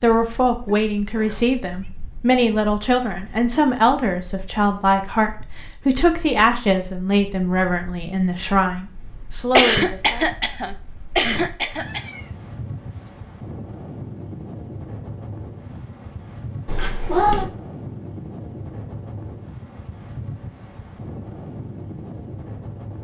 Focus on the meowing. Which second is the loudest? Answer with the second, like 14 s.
17 s.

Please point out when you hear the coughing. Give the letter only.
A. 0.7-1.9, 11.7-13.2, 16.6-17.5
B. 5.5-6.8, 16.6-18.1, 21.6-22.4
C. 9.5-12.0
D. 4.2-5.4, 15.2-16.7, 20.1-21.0
C.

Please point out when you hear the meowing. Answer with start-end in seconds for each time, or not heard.
0.7-1.9, 11.7-13.2, 16.6-17.5.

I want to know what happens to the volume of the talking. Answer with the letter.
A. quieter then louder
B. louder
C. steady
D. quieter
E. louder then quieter
C.